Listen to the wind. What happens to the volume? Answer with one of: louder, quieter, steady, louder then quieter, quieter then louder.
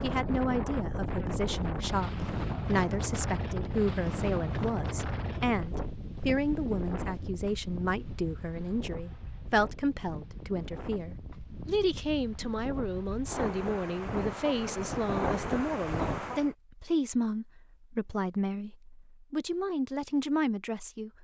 quieter then louder.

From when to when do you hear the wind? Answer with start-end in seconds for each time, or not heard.
0.0-16.6.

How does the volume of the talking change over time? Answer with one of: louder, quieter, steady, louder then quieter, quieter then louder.
steady.